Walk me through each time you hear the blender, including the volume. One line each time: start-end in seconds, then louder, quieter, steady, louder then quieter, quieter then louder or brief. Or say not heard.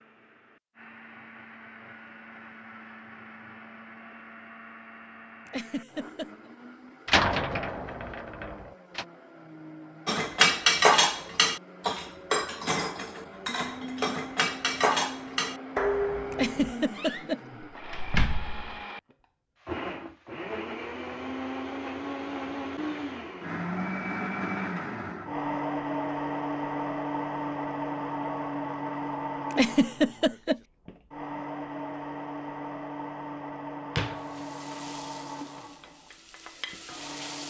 0.0-37.4 louder then quieter.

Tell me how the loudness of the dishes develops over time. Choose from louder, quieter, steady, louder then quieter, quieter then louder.
quieter then louder.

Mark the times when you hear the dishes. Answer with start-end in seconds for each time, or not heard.
10.1-16.8.